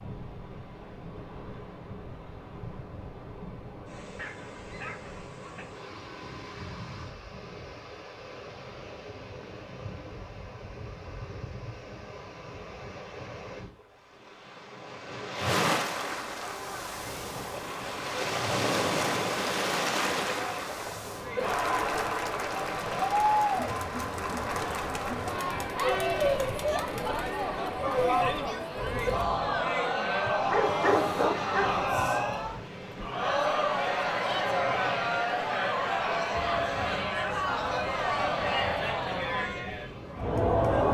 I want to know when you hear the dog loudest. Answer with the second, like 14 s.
31 s.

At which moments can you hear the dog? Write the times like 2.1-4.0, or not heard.
4.0-5.7, 30.5-31.9.